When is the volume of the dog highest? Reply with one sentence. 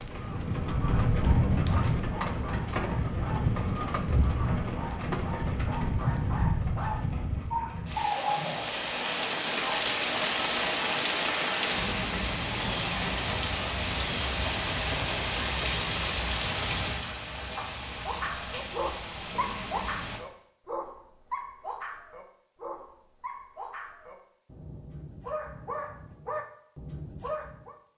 The volume of the dog peaks at 8 seconds.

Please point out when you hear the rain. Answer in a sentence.
You can hear the rain from 0.0 to 20.2 s.